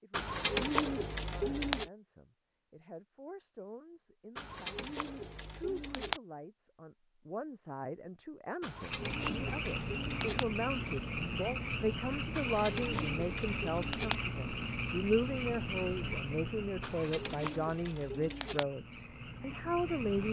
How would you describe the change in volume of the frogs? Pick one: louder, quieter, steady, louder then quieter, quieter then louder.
quieter.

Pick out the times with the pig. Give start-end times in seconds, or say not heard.
not heard.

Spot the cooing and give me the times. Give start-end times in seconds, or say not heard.
0.1-1.9, 4.3-6.2, 8.6-10.4, 12.3-14.2, 16.8-18.6.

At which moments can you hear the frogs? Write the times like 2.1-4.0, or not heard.
8.8-20.2.